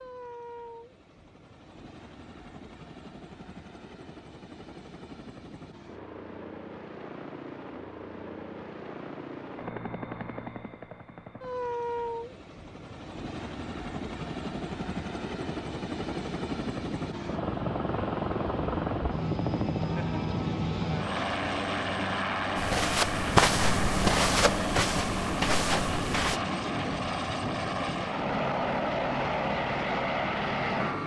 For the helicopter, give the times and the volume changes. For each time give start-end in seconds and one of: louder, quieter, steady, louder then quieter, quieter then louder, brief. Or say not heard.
0.0-31.0 louder.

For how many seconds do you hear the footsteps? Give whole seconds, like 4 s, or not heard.
4 s.